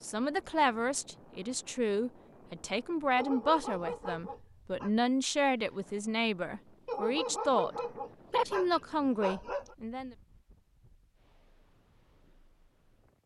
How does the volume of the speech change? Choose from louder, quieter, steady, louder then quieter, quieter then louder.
steady.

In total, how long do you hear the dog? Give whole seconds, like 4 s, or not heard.
5 s.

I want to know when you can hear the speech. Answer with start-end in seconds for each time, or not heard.
0.0-10.2.